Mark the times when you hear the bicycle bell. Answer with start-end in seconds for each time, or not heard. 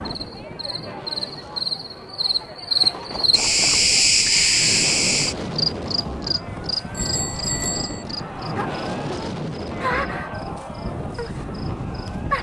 2.8-3.9, 6.9-8.1.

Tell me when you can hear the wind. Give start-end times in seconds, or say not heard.
0.0-12.3.